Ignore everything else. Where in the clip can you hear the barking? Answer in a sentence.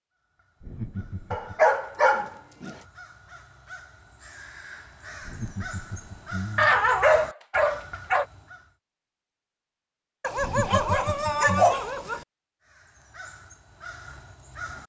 The barking can be heard from 1.3 to 2.8 s, from 6.5 to 8.2 s and from 10.2 to 12.2 s.